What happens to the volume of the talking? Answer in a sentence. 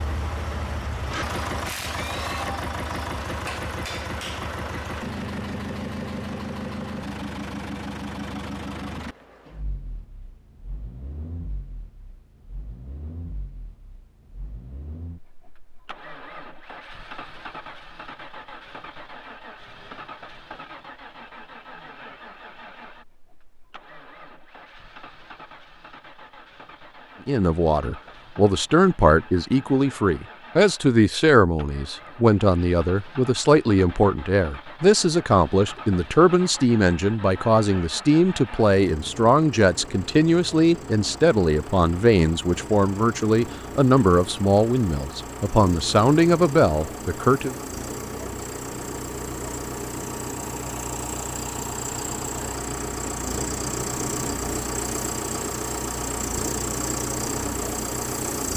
The volume of the talking stays about the same.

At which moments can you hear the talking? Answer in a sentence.
The talking can be heard from 27.2 to 47.5 s.